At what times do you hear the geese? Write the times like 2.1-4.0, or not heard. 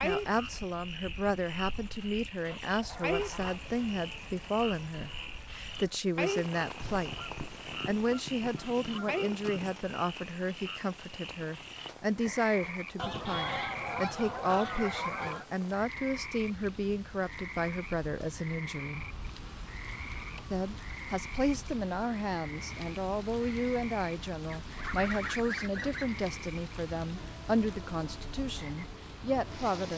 2.5-3.6, 6.8-9.8, 12.9-15.4, 18.9-20.9, 24.5-26.1.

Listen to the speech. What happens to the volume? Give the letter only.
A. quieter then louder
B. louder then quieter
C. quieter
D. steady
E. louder
D.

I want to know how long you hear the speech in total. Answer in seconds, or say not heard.
28 s.